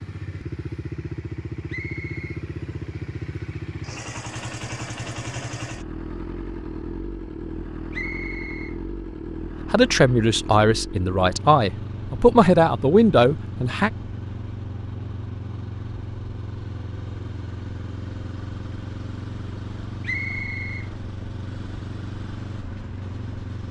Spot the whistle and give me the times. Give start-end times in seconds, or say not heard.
1.6-2.4, 7.9-8.8, 20.0-20.9.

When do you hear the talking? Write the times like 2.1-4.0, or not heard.
9.7-13.9.